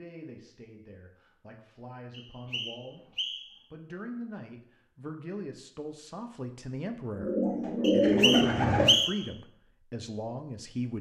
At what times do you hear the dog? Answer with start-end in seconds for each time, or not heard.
not heard.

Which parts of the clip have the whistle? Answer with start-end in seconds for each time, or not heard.
2.1-3.6, 7.8-9.3.